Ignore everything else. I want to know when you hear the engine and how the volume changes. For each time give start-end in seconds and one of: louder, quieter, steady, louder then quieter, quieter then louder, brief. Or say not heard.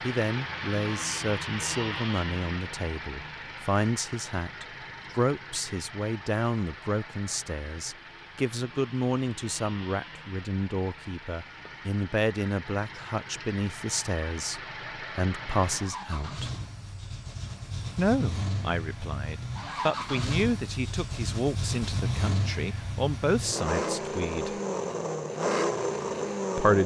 0.0-26.8 quieter then louder.